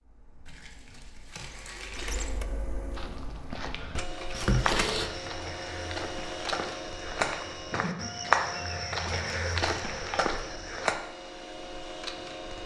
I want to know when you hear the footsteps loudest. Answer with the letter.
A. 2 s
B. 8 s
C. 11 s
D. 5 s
B.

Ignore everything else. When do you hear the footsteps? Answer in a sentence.
You can hear the footsteps from 2.9 to 10.9 s.